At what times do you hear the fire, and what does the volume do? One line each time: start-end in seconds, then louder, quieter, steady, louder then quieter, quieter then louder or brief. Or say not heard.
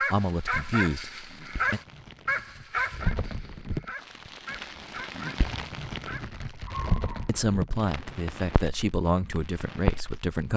0.2-10.5 louder.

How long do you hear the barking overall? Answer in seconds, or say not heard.
7 s.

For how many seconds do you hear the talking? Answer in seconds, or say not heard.
5 s.